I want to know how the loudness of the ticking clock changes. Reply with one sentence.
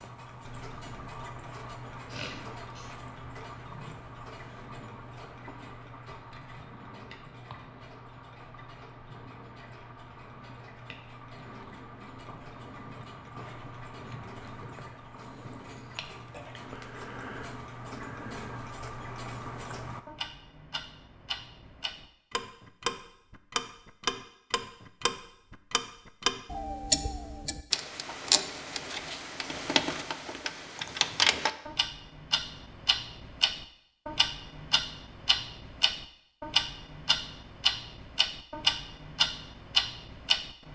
The loudness of the ticking clock goes up.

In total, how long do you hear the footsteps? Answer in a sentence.
You can't hear the footsteps here.